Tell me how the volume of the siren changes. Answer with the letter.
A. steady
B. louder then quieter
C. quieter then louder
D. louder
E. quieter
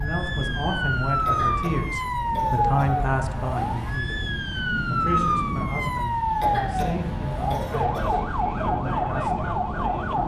A.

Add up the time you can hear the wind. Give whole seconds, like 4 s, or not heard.
10 s.